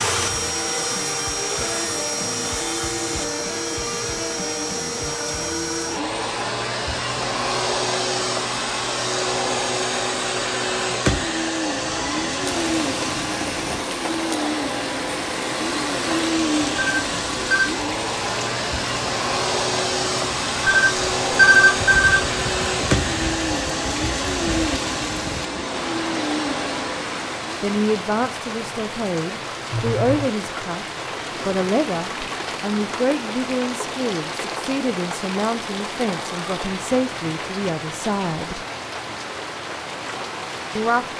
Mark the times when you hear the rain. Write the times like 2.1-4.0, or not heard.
12.4-41.1.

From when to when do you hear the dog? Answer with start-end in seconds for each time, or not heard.
not heard.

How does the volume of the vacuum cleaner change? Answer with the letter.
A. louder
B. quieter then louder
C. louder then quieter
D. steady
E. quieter
D.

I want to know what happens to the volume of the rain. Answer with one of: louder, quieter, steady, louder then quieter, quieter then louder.
steady.